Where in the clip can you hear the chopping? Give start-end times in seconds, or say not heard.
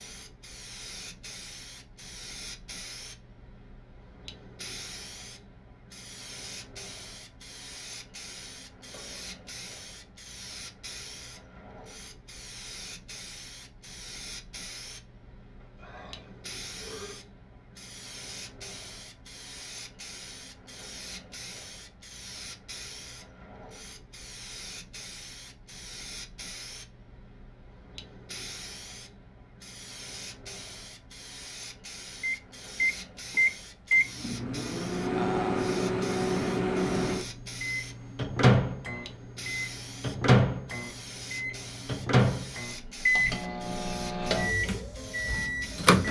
not heard.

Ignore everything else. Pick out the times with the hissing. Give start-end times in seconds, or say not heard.
0.0-46.0.